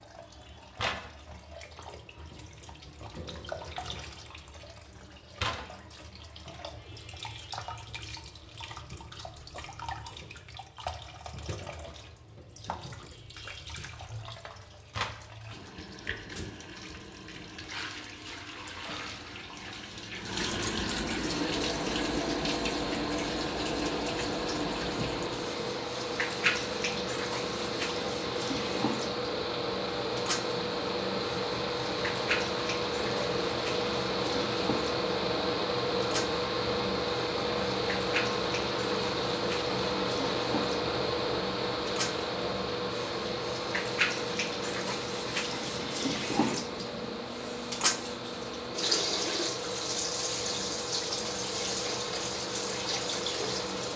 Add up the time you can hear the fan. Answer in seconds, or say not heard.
33 s.